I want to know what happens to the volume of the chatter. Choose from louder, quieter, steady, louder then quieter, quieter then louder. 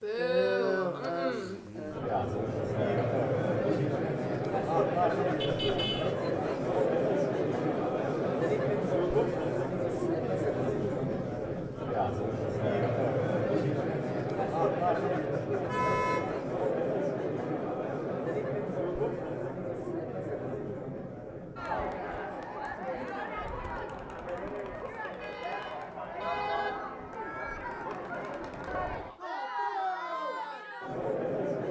quieter.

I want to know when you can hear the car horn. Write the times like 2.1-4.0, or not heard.
5.4-6.2, 15.7-16.4, 25.0-26.8.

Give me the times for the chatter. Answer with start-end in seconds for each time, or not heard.
0.0-31.6.